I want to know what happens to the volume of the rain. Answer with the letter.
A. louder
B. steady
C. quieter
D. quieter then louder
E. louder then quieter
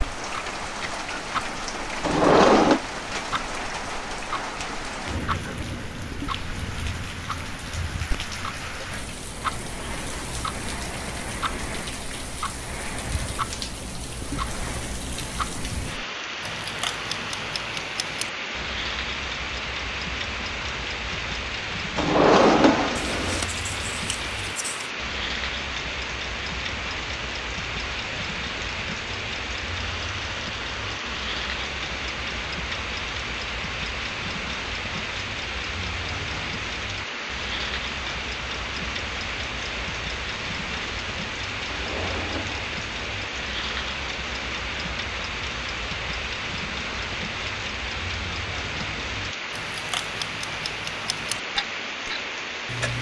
B.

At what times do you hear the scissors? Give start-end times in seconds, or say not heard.
23.1-24.9.